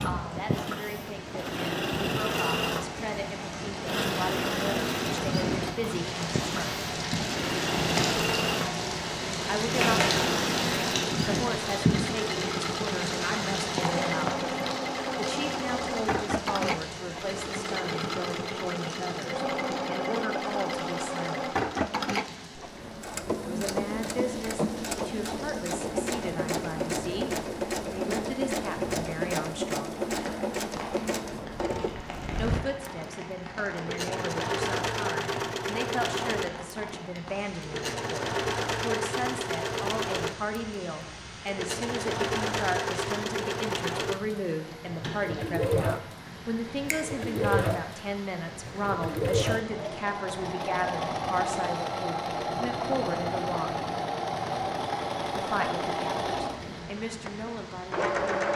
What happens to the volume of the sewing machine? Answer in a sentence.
The volume of the sewing machine stays about the same.